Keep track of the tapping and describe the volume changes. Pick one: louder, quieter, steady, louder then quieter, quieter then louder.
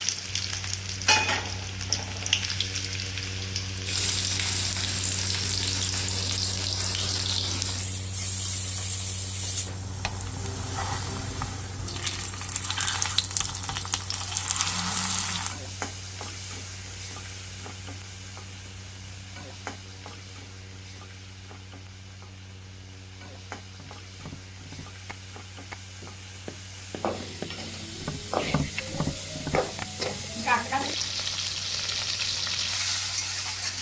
louder.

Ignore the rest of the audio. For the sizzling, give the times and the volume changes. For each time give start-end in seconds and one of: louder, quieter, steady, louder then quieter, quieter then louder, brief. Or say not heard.
0.0-33.7 quieter then louder.